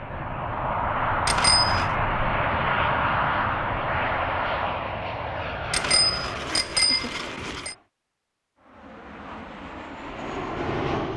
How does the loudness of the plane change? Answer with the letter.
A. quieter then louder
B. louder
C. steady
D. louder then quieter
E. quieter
A.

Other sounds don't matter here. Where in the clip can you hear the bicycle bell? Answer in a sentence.
You can hear the bicycle bell from 1.2 to 1.9 s and from 5.7 to 7.8 s.